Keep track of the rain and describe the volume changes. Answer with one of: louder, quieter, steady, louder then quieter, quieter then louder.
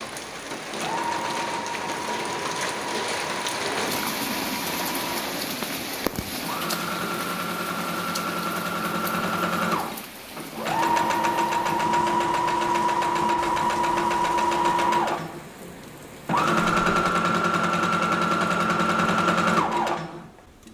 quieter.